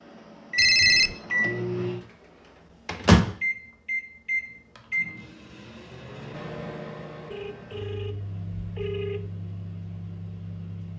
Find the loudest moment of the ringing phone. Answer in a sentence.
The volume of the ringing phone peaks at 1 second.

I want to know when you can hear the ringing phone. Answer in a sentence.
The ringing phone can be heard from 0.6 to 1.1 s and from 7.3 to 9.3 s.